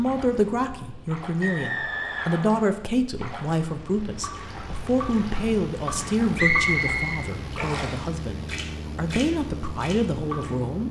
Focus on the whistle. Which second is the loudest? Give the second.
7 s.